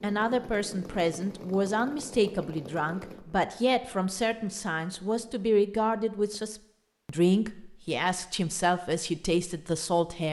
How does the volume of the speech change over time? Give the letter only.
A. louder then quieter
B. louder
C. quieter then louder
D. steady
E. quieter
D.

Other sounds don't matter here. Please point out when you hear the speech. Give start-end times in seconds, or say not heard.
0.0-10.2.